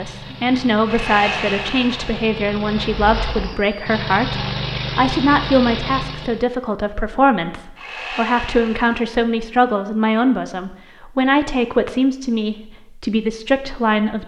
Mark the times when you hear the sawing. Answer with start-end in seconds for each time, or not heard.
0.8-2.2, 7.8-9.1.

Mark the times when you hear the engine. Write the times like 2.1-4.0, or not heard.
0.0-6.5.